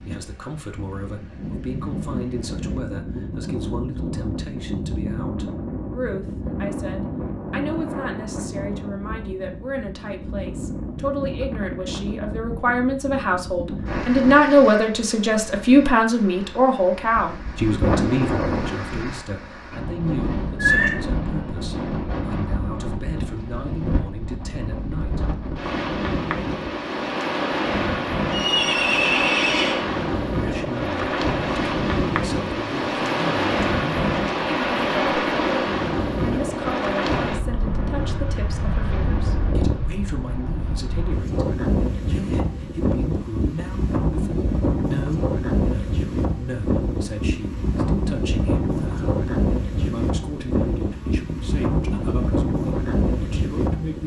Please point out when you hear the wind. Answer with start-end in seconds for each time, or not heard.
0.0-54.0.